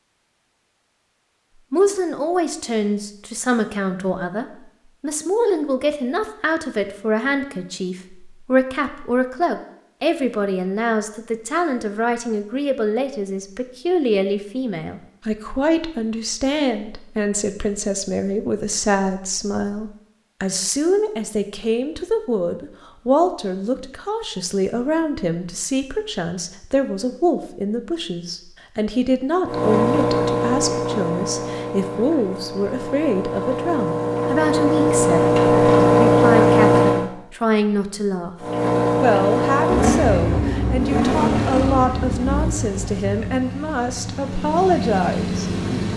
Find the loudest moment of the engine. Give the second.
36 s.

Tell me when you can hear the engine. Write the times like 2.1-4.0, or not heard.
29.4-37.1, 38.4-45.9.